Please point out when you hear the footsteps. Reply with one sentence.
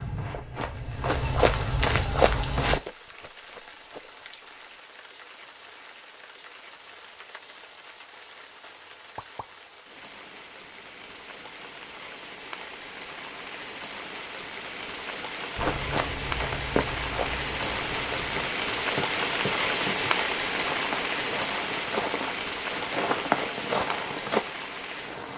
You can hear the footsteps from 0.0 to 2.8 s and from 15.6 to 24.4 s.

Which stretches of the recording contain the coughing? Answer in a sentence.
The coughing can't be heard in this clip.